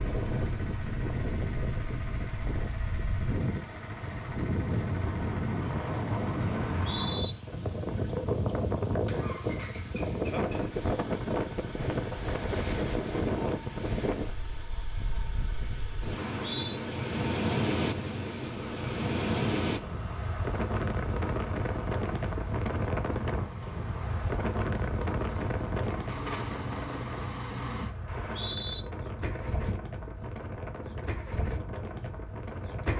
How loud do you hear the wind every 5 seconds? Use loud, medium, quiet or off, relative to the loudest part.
loud, loud, loud, loud, loud, medium, medium.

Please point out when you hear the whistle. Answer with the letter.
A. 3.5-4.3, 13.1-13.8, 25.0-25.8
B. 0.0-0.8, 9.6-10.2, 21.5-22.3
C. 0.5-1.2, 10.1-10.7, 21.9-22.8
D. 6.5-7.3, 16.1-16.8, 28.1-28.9
D.